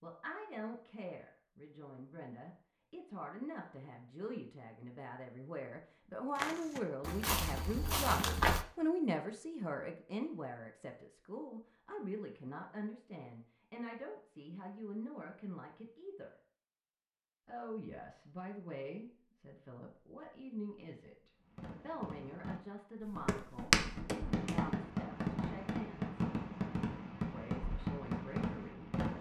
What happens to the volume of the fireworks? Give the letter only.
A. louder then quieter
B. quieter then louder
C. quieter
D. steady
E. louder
E.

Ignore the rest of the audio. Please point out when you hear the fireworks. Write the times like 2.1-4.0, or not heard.
21.4-29.1.